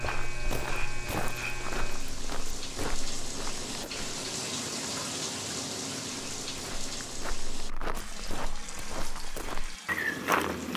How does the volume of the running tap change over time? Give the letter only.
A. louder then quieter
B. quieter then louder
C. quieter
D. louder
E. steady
A.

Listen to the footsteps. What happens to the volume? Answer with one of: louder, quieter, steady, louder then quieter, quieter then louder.
quieter then louder.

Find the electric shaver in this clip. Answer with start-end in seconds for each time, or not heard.
0.0-2.1.